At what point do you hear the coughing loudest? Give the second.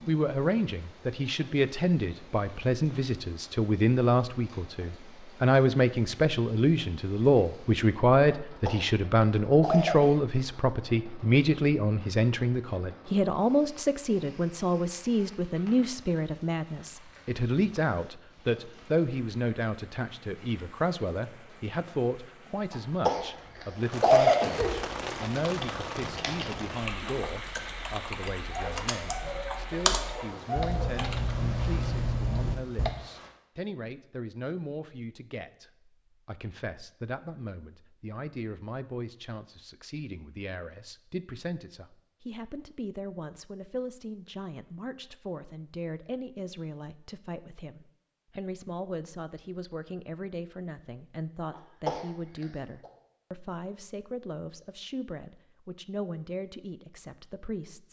24 s.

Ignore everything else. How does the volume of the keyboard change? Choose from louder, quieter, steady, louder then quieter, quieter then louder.
louder.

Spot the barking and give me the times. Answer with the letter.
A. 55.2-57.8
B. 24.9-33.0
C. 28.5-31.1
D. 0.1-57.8
C.